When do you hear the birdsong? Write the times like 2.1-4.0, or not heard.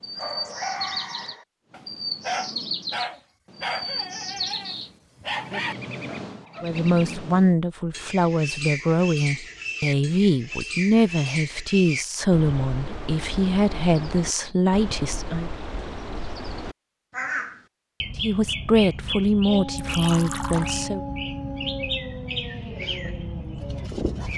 0.0-24.3.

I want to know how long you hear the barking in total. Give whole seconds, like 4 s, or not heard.
11 s.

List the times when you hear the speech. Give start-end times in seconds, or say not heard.
6.6-15.5, 18.1-21.0.